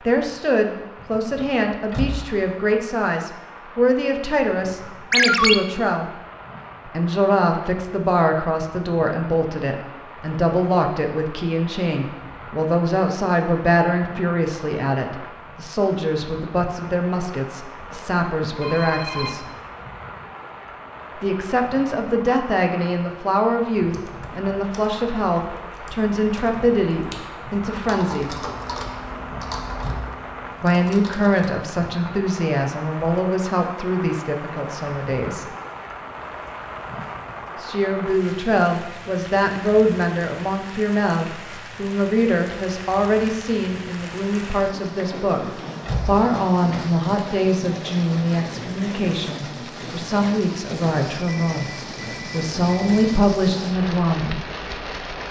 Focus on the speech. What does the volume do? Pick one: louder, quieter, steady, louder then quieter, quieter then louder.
steady.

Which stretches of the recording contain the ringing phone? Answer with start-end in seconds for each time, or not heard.
5.1-5.5, 18.6-19.6, 51.2-53.2.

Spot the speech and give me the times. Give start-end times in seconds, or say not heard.
0.1-6.2, 6.8-19.4, 21.2-28.4, 30.6-35.5, 37.5-54.5.